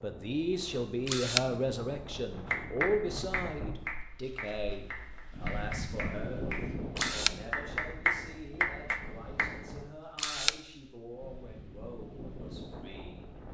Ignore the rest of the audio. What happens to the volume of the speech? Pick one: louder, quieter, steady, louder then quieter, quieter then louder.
quieter.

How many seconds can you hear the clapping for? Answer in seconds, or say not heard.
7 s.